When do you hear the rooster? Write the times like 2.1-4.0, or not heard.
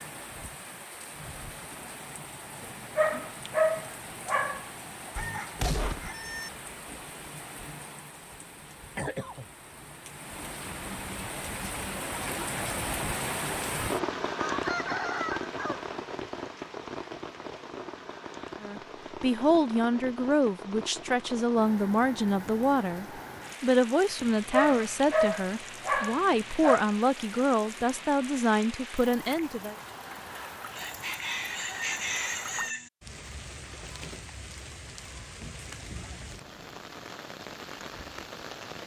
5.2-6.5, 14.3-15.9, 30.8-32.9.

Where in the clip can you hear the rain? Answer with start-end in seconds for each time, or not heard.
0.0-38.8.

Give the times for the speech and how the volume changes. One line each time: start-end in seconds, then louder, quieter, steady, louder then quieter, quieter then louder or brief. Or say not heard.
18.6-29.8 steady.